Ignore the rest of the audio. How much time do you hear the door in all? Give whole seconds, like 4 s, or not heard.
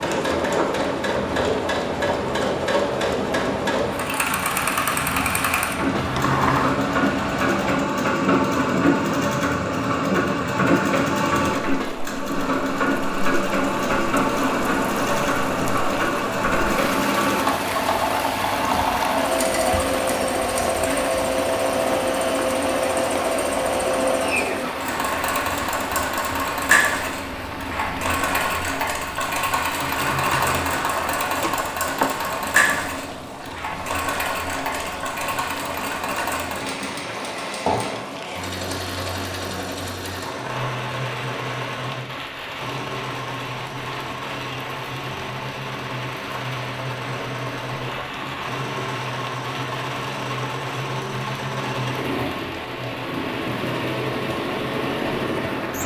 4 s.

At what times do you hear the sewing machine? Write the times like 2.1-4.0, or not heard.
0.0-55.8.